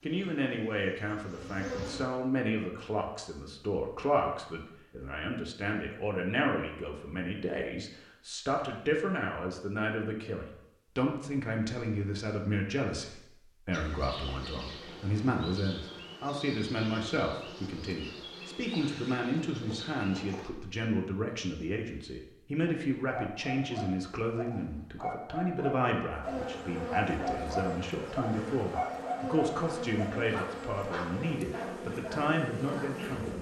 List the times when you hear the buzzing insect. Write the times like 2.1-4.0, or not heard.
0.0-2.1, 13.7-20.5, 26.2-33.3.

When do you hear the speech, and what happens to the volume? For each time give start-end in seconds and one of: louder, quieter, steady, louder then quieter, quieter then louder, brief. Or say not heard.
0.0-33.3 steady.